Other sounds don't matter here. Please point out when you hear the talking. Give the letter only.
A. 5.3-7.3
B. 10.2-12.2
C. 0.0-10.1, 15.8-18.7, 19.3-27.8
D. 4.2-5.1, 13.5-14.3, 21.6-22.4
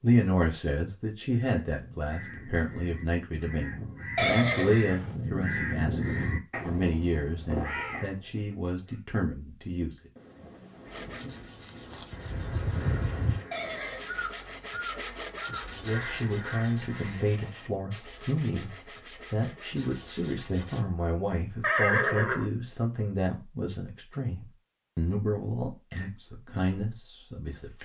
C.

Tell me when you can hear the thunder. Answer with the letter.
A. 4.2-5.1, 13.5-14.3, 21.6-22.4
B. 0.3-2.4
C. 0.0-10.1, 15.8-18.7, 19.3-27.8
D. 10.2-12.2
D.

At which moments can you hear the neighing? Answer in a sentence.
You can hear the neighing from 4.2 to 5.1 s, from 13.5 to 14.3 s and from 21.6 to 22.4 s.